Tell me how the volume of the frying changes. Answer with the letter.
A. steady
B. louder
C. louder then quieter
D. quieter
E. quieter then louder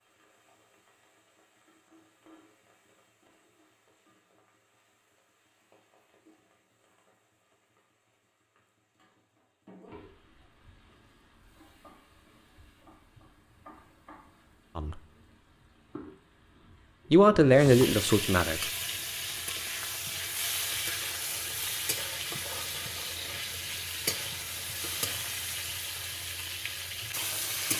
B.